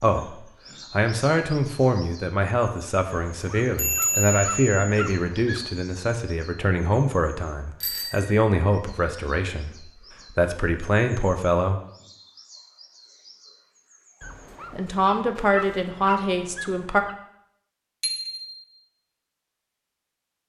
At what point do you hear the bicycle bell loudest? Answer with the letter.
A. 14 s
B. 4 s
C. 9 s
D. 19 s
B.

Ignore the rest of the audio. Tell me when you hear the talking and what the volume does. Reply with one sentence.
You can hear the talking from 0.0 to 11.8 s, at a steady volume; and briefly from 14.7 to 17.1 s.